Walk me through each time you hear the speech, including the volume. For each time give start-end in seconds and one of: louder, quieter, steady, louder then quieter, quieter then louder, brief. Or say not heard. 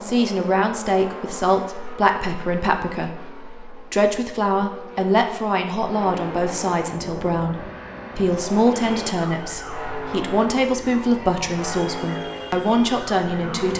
0.0-13.7 steady.